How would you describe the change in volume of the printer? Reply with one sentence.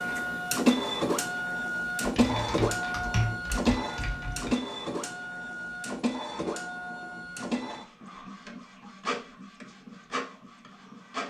The volume of the printer goes down.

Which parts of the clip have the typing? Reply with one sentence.
You can hear the typing from 2.0 to 4.5 s.